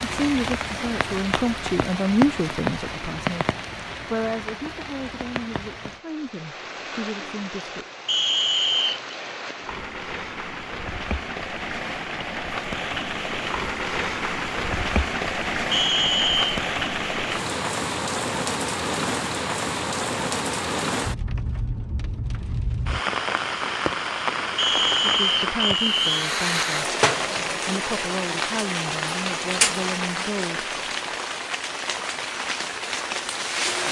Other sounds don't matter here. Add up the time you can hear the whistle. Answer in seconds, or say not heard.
4 s.